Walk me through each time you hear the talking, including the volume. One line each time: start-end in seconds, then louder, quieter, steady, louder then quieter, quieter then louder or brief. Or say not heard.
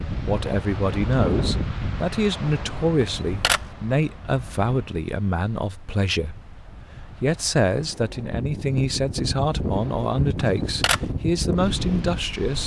0.1-12.6 steady.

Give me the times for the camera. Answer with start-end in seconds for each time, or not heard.
3.0-3.8, 10.4-11.2.